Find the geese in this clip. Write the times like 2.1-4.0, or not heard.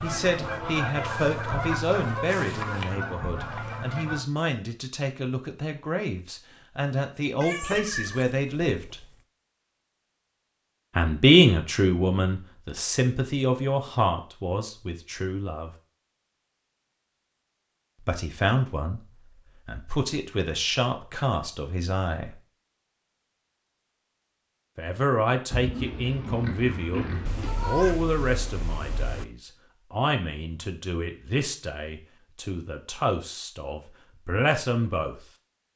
0.0-4.2.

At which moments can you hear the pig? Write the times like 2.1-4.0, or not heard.
25.5-27.5.